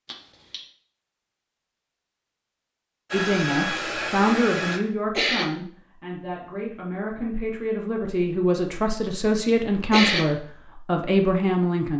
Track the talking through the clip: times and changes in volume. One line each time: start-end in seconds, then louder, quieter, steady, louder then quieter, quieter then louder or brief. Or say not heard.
3.1-11.9 quieter then louder.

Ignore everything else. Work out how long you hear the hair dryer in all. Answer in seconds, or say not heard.
2 s.